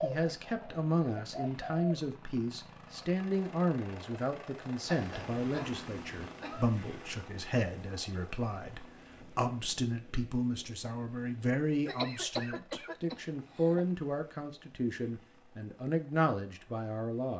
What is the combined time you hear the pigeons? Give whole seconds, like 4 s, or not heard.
2 s.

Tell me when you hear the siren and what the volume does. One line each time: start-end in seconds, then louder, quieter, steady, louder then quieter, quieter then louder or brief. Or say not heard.
not heard.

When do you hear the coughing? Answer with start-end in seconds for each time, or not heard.
4.9-6.8, 11.8-13.8.